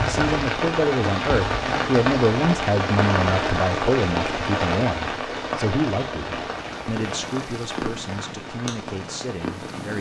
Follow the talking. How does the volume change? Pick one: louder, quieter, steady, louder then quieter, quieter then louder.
quieter.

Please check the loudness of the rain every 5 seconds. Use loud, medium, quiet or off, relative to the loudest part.
loud, medium.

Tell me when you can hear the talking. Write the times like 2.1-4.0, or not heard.
0.0-9.9.